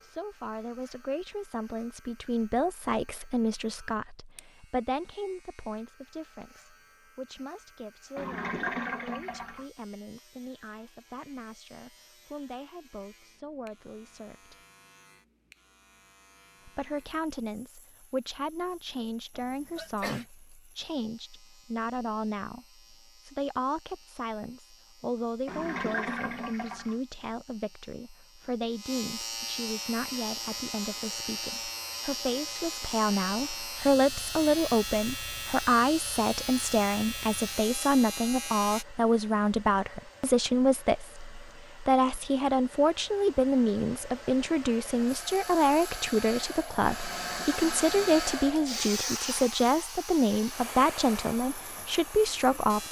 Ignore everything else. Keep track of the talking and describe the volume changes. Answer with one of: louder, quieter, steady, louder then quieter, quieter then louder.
louder.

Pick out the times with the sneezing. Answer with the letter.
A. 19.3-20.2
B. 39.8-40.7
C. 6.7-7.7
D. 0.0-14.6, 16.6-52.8
A.